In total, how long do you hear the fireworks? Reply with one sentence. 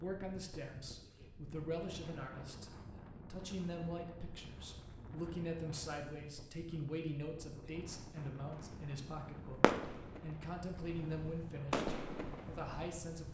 You can hear the fireworks for 5 seconds altogether.